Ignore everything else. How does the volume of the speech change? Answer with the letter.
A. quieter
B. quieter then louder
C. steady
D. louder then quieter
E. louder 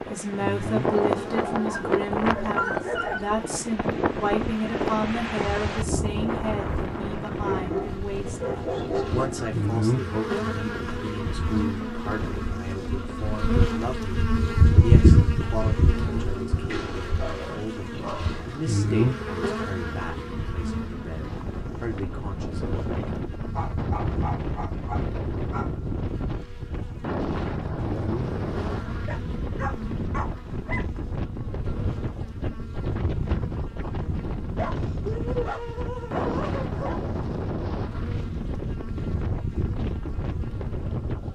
A.